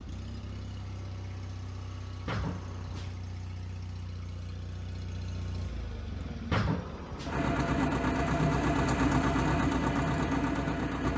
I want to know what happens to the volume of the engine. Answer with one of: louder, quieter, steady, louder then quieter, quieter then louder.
louder.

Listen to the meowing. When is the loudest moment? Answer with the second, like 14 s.
7 s.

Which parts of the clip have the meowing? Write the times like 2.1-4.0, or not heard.
2.2-3.1, 6.5-7.3.